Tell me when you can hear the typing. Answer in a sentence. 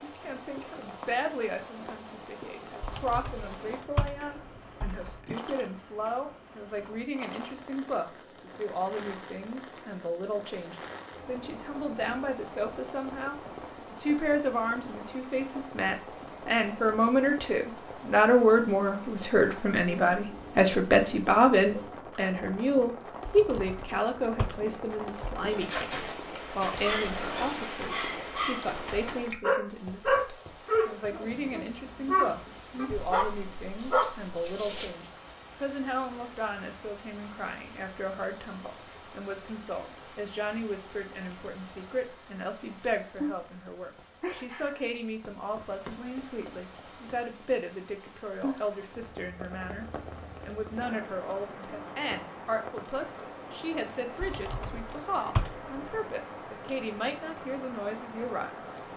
The typing can be heard from 2.8 to 5.4 s, from 23.2 to 25.6 s and from 54.2 to 56.0 s.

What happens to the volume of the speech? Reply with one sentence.
The volume of the speech goes up, then down.